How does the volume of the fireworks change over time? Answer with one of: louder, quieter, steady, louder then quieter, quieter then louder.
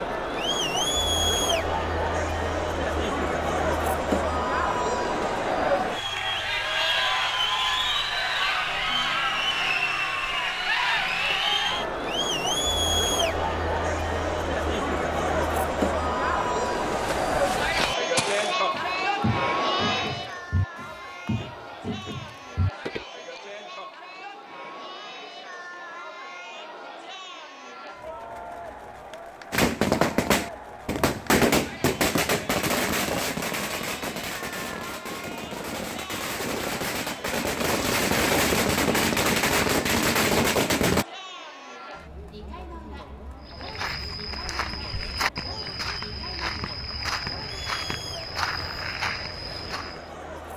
quieter then louder.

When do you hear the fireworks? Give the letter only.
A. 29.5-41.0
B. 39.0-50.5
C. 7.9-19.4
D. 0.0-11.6
A.